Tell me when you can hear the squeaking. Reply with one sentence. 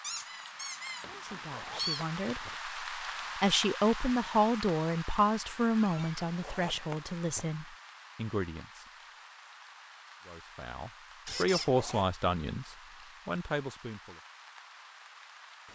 The squeaking can be heard from 0.0 to 2.0 s, from 5.8 to 6.2 s and from 11.2 to 11.7 s.